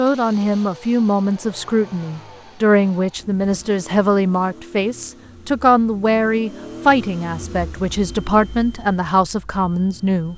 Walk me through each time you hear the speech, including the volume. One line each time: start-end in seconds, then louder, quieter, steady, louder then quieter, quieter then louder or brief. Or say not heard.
0.0-10.3 steady.